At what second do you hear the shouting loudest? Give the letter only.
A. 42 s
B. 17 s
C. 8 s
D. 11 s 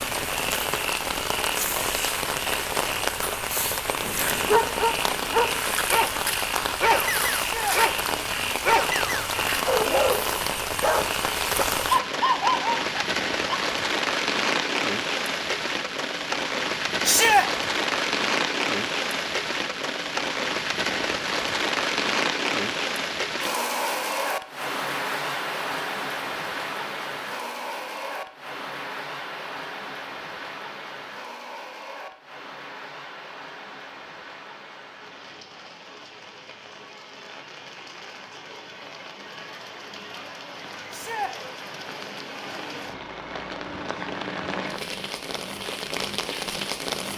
B.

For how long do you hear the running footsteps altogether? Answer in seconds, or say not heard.
not heard.